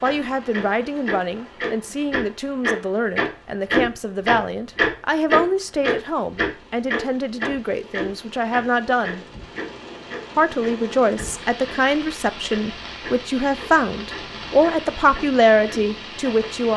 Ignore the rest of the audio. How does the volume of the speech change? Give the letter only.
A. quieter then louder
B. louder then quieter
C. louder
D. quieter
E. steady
C.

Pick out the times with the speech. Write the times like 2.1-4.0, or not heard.
0.0-9.2, 10.3-16.7.